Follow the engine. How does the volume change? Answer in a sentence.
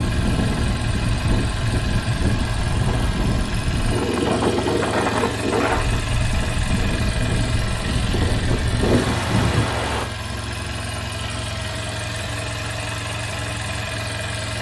The loudness of the engine stays about the same.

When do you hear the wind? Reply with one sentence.
You can hear the wind from 0.0 to 10.1 s.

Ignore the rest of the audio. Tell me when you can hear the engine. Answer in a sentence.
You can hear the engine from 0.0 to 14.5 s.